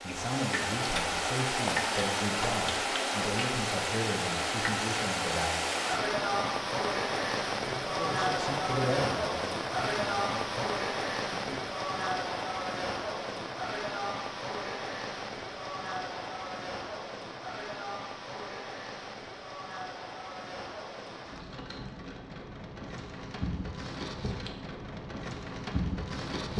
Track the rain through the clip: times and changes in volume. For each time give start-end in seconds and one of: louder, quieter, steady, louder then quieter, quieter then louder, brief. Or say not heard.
0.0-26.5 quieter.